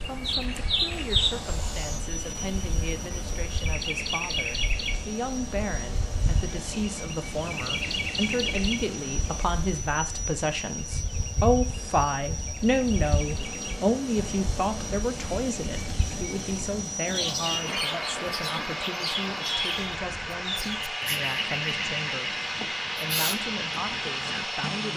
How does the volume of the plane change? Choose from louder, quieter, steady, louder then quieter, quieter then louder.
louder.